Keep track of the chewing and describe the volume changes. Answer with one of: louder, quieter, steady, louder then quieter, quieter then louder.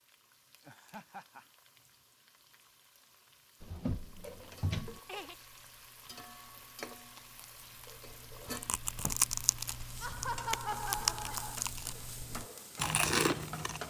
louder.